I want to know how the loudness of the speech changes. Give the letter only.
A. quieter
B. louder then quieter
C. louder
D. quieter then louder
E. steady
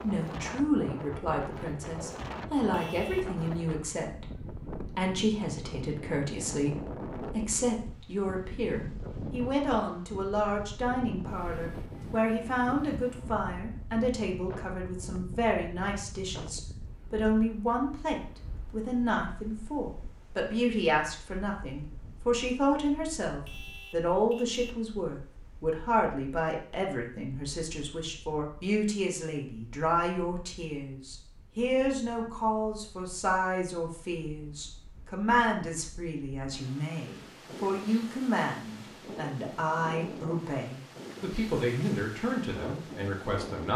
E.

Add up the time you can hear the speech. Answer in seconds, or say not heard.
44 s.